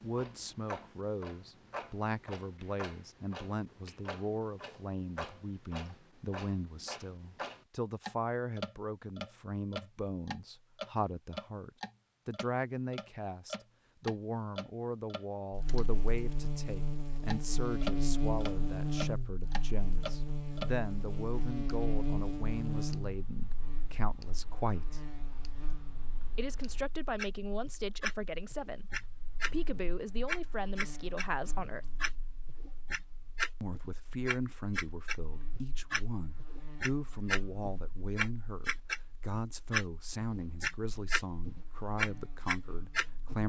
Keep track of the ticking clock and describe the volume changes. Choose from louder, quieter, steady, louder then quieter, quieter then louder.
louder.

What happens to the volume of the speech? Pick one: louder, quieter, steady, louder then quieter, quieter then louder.
steady.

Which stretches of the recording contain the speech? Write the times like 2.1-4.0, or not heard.
0.0-25.1, 26.4-31.9, 33.6-43.4.